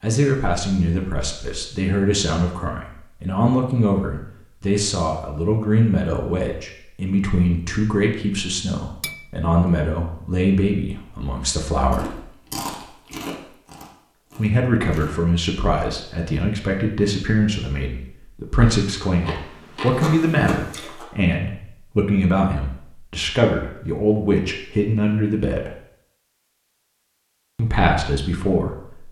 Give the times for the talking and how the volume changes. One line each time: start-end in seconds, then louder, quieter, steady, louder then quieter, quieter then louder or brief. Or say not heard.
0.0-12.1 steady
14.3-25.7 steady
27.6-29.0 brief.